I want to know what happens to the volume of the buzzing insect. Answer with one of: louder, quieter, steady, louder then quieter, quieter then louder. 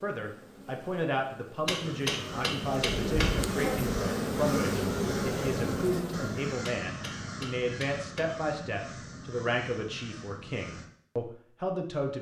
louder.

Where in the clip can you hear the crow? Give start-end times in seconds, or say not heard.
1.8-10.9.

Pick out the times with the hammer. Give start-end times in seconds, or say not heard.
1.6-3.4, 6.7-8.4.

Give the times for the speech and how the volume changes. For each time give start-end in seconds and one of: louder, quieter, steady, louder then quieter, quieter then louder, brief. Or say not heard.
0.0-12.1 steady.